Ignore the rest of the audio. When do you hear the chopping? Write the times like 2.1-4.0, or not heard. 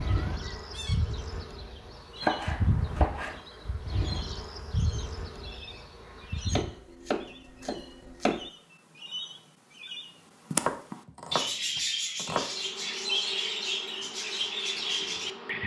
2.2-3.4, 6.5-8.5, 10.6-12.6.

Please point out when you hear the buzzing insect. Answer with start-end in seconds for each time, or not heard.
0.0-6.7, 12.3-15.6.